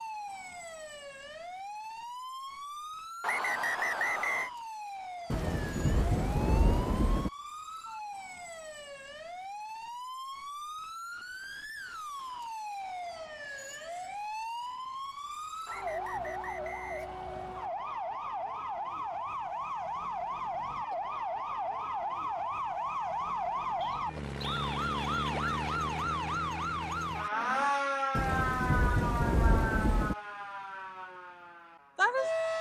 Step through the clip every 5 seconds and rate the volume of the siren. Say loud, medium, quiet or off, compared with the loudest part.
medium, medium, medium, medium, loud, loud, loud.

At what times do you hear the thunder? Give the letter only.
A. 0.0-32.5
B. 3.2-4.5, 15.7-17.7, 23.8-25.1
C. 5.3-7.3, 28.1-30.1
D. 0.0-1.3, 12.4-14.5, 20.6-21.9
C.